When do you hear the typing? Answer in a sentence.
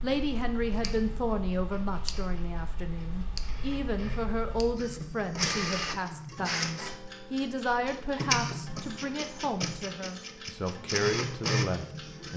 The typing can't be heard in this clip.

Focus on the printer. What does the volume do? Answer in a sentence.
The loudness of the printer goes up.